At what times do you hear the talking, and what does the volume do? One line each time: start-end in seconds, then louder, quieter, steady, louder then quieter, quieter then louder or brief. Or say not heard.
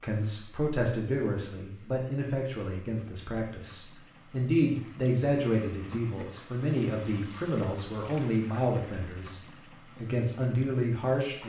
0.0-11.4 steady.